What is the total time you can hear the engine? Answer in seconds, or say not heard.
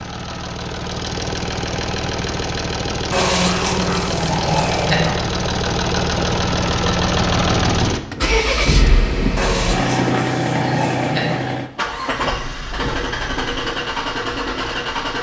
15 s.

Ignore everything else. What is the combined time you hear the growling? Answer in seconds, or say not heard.
4 s.